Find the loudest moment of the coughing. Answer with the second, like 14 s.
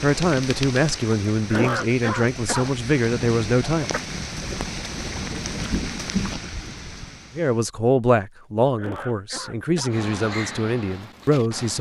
2 s.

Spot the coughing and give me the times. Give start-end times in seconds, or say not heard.
1.5-2.6, 8.8-9.9.